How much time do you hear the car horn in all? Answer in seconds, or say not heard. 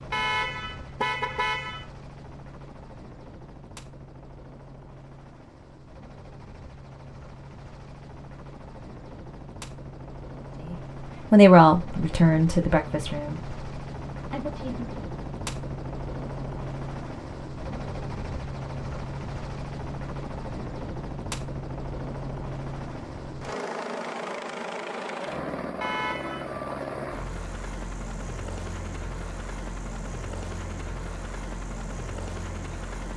3 s.